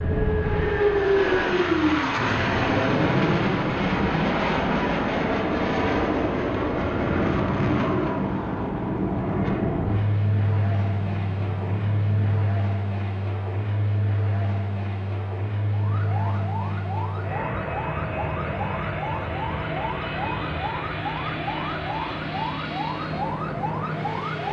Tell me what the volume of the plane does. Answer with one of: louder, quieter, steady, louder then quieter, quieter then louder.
quieter.